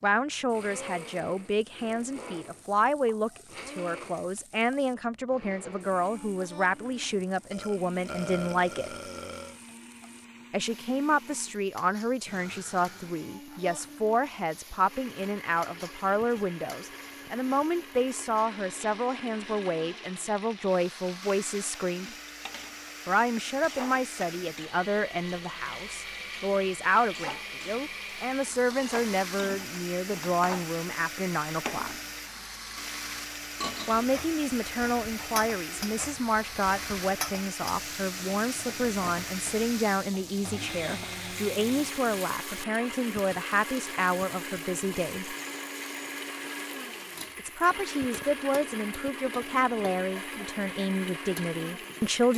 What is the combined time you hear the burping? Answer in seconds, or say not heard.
2 s.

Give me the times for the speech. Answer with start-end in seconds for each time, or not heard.
0.0-8.9, 10.5-22.1, 23.1-31.9, 33.9-45.4, 47.4-52.3.